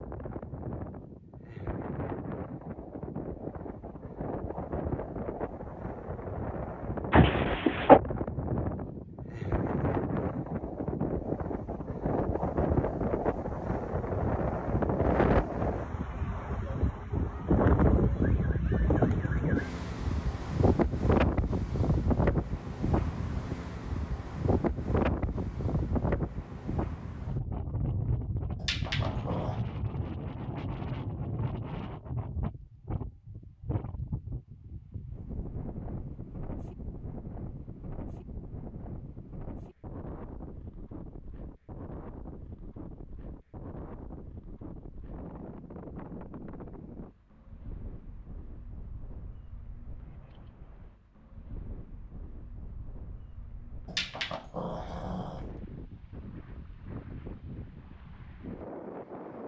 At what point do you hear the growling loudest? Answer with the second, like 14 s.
8 s.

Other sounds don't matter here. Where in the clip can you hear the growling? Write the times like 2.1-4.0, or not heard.
7.1-8.0, 28.6-29.6, 53.9-55.4.